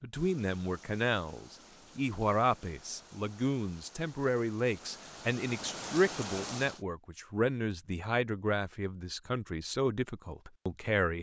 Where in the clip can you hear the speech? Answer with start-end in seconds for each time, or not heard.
0.0-11.1.